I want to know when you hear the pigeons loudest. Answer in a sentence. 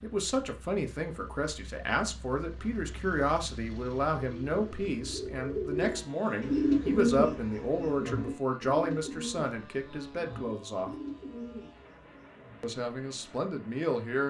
The loudest moment of the pigeons is at 7 seconds.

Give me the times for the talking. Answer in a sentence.
You can hear the talking from 0.0 to 10.9 s and from 12.6 to 14.2 s.